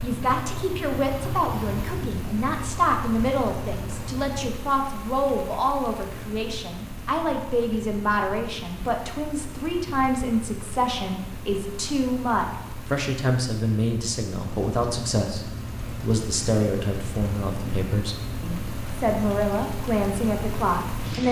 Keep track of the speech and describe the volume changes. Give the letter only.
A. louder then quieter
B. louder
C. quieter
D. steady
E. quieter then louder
D.